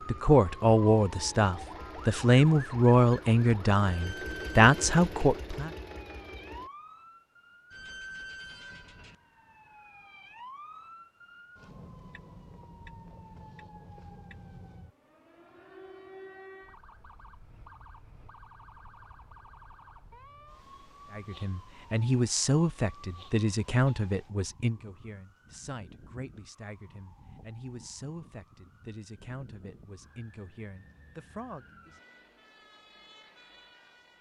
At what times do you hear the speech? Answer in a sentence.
The speech can be heard from 0.1 to 5.7 s and from 21.1 to 31.9 s.